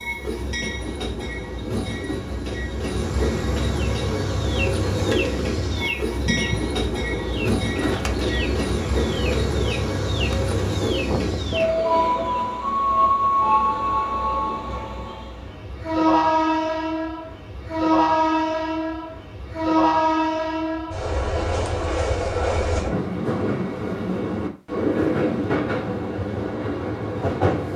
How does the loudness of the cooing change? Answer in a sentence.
The volume of the cooing stays about the same.